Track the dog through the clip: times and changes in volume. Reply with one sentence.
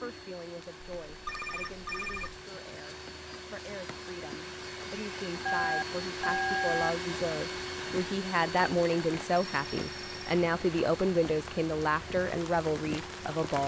The dog can't be heard in this clip.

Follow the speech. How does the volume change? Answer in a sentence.
The loudness of the speech goes up.